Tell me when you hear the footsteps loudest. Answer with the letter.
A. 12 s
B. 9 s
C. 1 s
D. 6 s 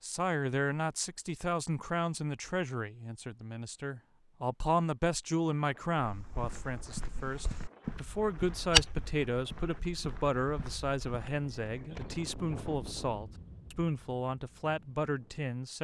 B.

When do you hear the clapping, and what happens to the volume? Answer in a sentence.
The clapping can't be heard in this clip.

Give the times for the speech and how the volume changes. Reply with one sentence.
The speech can be heard from 0.0 to 15.7 s, at a steady volume.